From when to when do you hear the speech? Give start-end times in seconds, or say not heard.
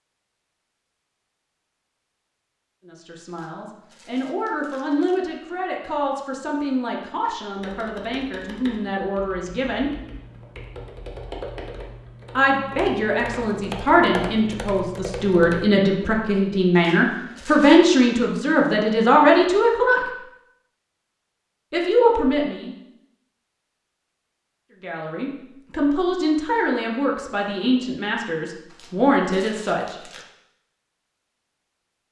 2.9-9.9, 12.3-20.1, 21.7-22.8, 24.8-30.0.